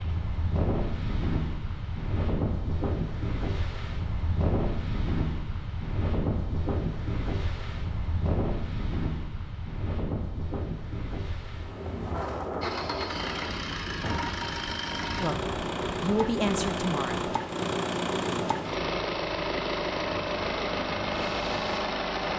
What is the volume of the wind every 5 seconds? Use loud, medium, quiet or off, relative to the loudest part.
loud, loud, loud, medium, medium.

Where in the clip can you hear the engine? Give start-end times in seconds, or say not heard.
12.6-22.3.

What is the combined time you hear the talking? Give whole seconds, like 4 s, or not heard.
2 s.